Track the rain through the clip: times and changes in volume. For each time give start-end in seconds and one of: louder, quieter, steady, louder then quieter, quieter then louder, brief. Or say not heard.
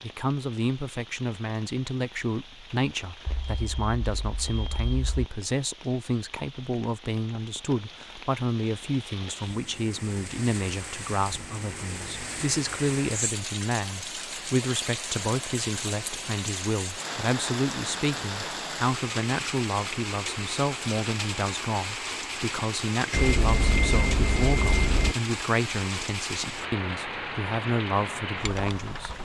0.0-29.1 louder.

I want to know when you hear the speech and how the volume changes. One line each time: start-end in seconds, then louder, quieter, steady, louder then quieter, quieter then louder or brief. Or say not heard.
0.0-29.1 steady.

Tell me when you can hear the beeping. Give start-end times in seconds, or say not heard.
3.2-5.3, 23.1-25.1.